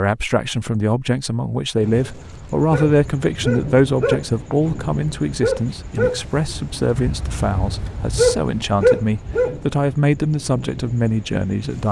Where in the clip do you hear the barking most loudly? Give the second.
9 s.